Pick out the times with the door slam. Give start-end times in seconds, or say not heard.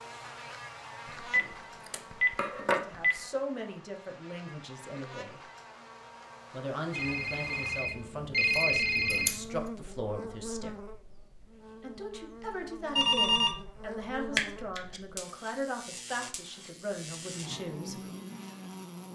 not heard.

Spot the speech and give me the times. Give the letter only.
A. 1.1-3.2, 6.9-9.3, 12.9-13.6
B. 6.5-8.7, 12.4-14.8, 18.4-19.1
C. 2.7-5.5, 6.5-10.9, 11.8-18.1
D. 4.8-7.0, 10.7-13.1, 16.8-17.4
C.